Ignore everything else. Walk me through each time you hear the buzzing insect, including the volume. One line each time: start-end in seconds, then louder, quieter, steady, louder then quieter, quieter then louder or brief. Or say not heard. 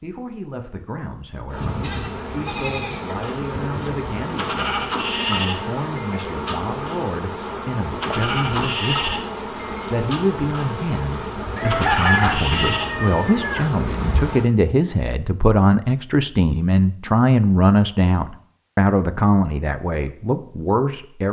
1.4-14.5 steady.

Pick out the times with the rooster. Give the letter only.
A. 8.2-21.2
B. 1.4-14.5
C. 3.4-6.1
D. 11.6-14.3
D.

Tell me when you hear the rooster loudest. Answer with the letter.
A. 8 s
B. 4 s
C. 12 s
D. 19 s
C.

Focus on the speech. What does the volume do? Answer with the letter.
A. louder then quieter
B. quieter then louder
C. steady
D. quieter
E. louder
E.